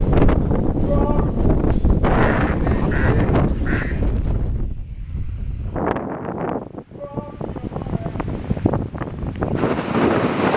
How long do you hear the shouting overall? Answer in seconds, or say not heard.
2 s.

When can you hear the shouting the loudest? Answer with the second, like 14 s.
1 s.